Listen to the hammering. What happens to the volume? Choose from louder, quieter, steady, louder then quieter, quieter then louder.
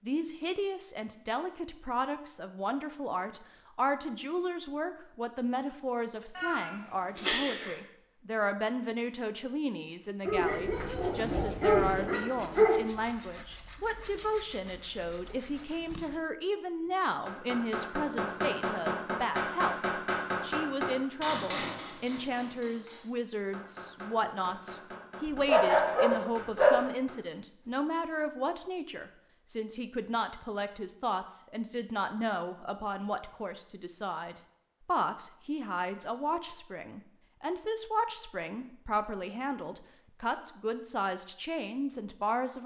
quieter.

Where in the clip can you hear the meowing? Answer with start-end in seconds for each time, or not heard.
6.3-7.8.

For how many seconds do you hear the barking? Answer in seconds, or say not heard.
4 s.